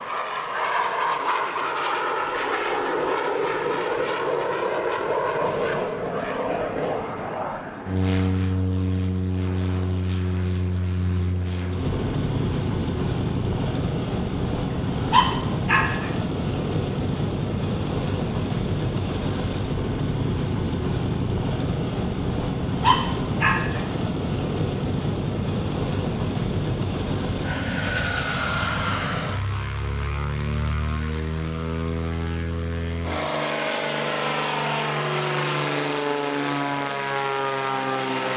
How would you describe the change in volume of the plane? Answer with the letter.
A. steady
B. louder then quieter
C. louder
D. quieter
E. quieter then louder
A.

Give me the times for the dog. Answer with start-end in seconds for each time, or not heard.
15.1-16.1, 22.8-23.8.